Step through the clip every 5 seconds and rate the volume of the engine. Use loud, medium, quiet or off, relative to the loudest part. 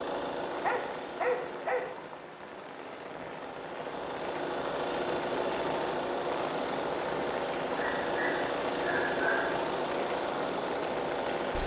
medium, loud, loud.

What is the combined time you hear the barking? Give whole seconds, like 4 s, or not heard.
3 s.